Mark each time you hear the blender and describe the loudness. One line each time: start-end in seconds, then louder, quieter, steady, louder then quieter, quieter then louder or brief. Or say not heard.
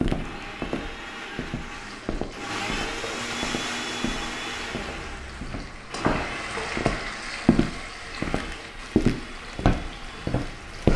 0.1-10.9 louder then quieter.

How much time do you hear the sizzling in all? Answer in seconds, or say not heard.
9 s.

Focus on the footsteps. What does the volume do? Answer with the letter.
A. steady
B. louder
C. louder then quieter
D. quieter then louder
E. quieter
B.